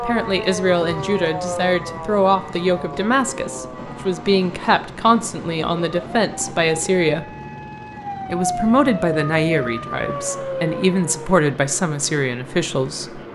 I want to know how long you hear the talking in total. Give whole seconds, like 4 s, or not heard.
12 s.